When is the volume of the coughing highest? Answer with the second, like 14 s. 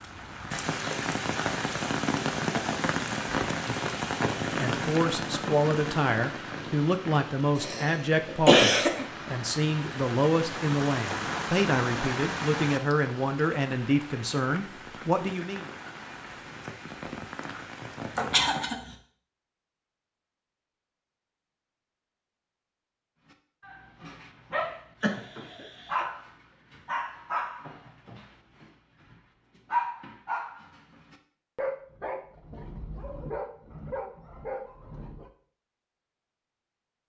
9 s.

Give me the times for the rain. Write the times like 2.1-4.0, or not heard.
0.0-18.6.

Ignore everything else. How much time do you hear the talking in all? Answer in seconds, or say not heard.
11 s.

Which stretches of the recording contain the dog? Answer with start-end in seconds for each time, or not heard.
23.3-35.3.